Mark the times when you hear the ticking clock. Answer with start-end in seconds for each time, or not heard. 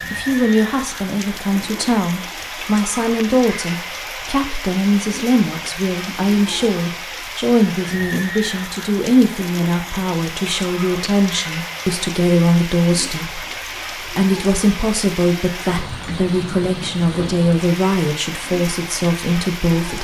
not heard.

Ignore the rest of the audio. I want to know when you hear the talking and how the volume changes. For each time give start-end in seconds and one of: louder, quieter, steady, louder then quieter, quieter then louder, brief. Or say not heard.
0.1-19.9 steady.